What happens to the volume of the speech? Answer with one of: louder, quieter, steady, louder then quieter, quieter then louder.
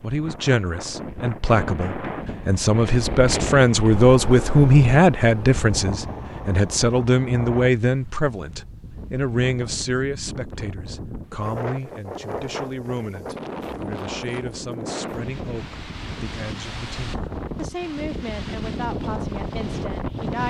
quieter.